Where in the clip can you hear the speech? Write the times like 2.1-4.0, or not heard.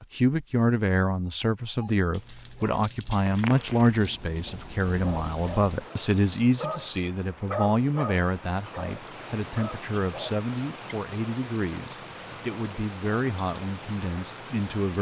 0.0-14.9.